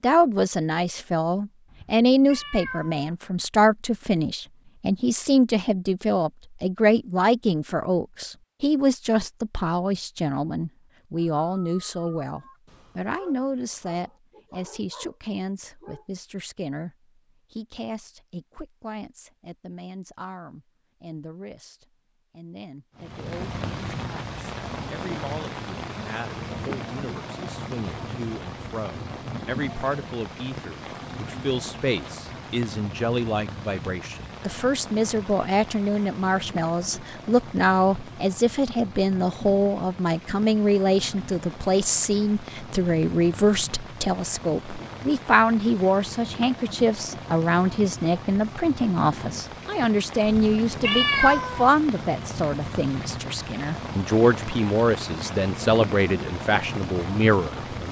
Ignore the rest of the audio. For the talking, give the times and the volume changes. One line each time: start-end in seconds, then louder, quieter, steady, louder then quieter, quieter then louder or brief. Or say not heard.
0.0-57.8 quieter then louder.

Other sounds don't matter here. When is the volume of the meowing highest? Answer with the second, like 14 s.
51 s.